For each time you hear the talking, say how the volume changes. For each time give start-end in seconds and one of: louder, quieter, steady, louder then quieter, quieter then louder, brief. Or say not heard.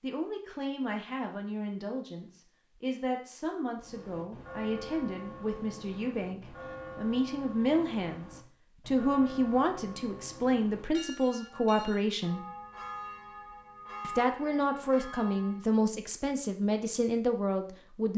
0.0-12.4 louder
14.0-18.1 steady.